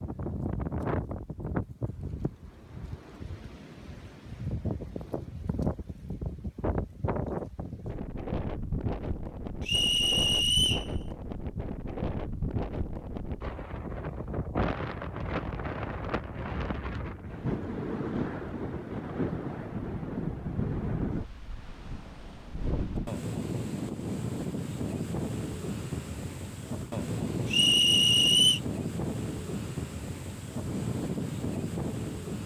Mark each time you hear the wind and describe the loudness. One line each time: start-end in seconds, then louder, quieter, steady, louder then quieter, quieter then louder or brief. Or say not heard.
0.0-32.4 steady.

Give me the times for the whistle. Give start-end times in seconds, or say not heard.
9.7-10.9, 27.5-28.6.